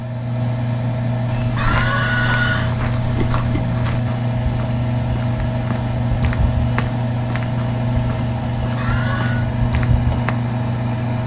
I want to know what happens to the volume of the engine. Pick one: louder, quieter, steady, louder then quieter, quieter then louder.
steady.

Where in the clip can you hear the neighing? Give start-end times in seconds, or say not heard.
1.6-2.8, 8.8-9.5.